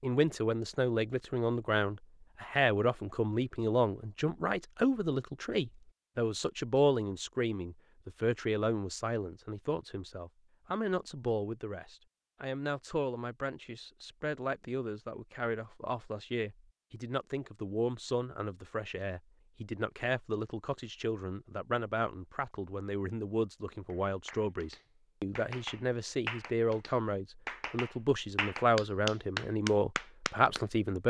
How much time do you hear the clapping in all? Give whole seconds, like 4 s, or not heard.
7 s.